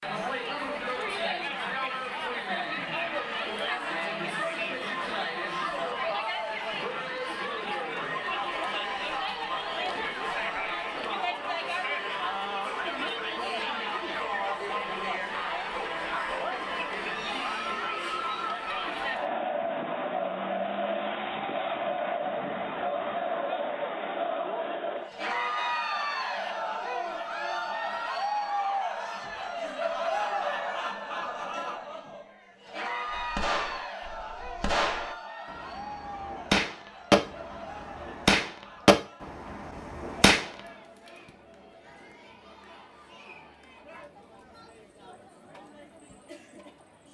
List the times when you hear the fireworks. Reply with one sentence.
The fireworks can be heard from 33.0 to 40.5 s.